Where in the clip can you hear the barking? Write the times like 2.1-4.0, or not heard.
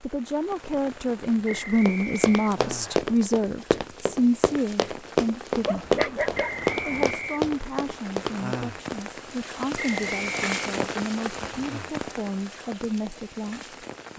5.6-7.2.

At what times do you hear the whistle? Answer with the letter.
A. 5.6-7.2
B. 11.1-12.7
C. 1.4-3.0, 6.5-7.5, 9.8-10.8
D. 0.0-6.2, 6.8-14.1
C.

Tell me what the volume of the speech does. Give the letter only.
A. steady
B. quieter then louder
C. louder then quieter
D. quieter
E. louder
D.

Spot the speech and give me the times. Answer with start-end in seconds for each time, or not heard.
0.0-6.2, 6.8-14.1.